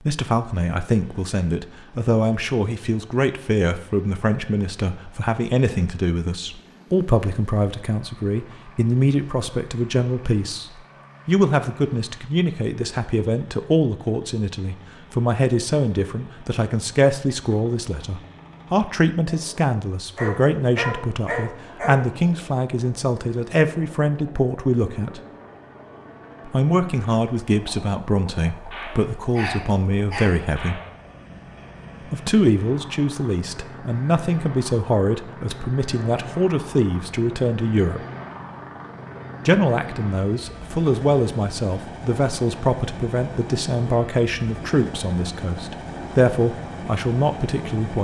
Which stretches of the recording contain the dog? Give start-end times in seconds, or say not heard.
20.1-22.0, 28.9-30.4.